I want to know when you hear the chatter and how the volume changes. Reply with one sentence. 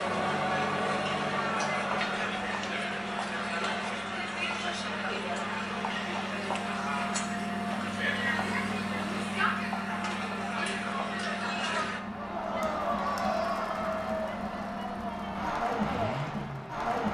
The chatter can be heard from 0.0 to 17.0 s, at a steady volume.